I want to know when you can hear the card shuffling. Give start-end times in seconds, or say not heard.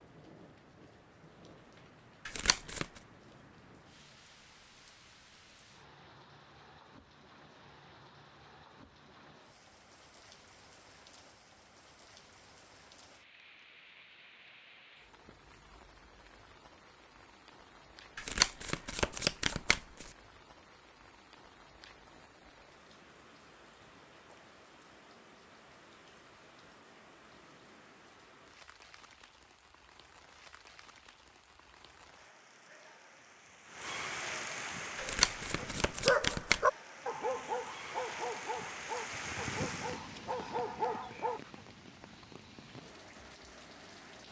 2.2-2.9, 18.1-20.1, 35.0-36.6.